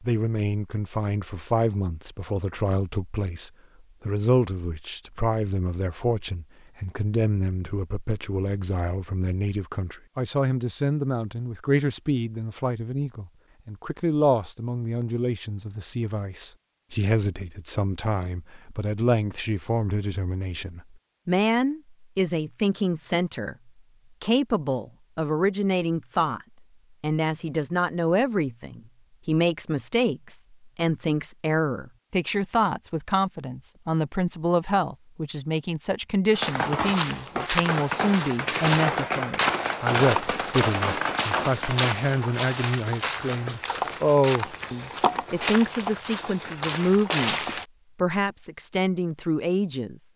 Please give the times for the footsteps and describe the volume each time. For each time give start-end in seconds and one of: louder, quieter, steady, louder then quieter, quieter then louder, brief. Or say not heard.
36.4-47.6 steady.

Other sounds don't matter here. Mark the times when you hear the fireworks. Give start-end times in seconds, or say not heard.
36.3-41.9.